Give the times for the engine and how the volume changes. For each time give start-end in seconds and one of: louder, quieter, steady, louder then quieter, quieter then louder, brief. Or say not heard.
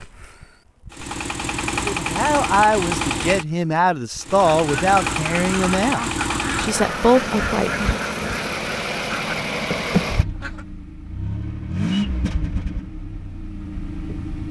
0.0-14.4 steady.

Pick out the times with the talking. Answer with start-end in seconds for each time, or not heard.
1.9-7.9.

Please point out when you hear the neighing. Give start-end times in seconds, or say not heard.
not heard.